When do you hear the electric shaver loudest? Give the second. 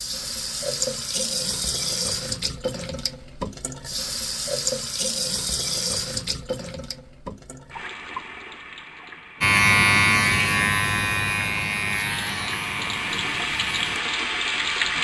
10 s.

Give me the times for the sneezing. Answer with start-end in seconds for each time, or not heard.
not heard.